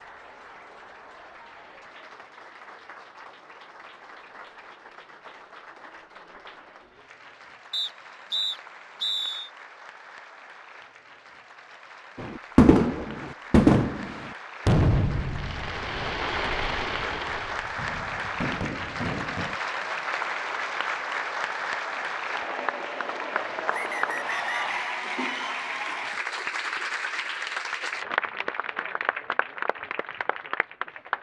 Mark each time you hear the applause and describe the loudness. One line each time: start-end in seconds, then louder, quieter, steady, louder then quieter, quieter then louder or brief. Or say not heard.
0.0-31.1 louder.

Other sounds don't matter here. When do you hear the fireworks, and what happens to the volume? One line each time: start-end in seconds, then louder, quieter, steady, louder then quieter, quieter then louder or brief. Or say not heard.
12.2-19.6 quieter.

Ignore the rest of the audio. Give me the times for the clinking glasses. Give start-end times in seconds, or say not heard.
not heard.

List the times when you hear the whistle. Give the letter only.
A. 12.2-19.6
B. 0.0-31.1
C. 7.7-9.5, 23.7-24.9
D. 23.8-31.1
C.